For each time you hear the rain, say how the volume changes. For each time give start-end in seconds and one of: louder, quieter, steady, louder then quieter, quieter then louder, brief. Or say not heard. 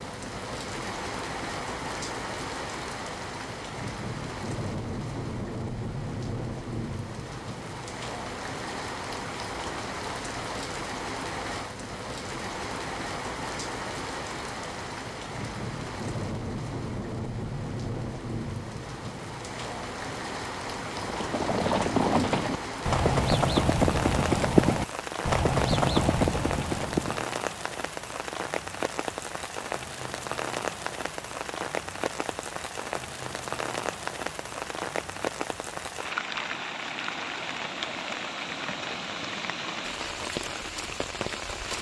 0.0-41.7 steady.